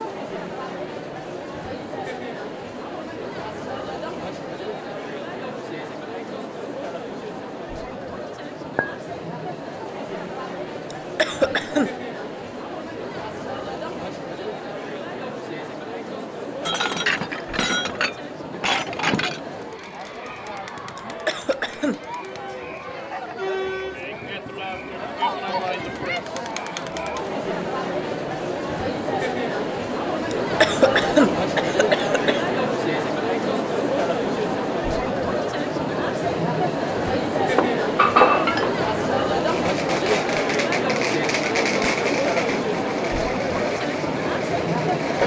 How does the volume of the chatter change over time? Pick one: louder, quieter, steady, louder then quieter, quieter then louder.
louder.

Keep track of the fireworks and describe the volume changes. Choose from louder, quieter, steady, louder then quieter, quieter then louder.
quieter.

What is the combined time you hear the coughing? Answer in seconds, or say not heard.
4 s.